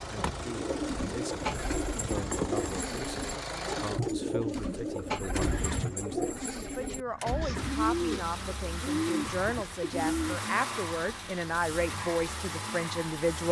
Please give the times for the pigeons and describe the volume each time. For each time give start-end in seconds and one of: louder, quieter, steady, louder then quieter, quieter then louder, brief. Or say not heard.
0.4-10.4 steady.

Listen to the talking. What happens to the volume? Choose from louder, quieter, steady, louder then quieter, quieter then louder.
louder.